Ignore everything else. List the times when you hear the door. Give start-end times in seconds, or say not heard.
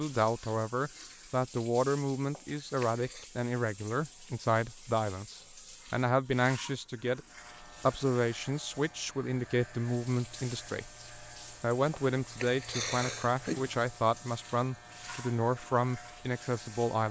not heard.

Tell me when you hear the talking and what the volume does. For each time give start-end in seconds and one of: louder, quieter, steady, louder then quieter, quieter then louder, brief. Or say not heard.
0.0-17.0 steady.